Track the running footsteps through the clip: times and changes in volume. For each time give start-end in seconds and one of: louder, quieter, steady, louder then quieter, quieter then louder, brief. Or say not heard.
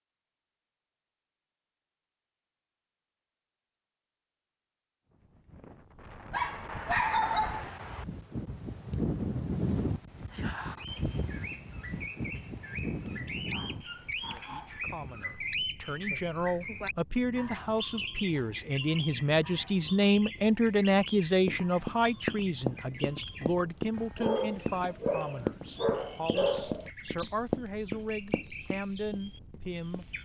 21.4-30.1 quieter.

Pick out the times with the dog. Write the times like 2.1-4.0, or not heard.
6.3-8.1, 13.3-14.8, 24.1-26.9.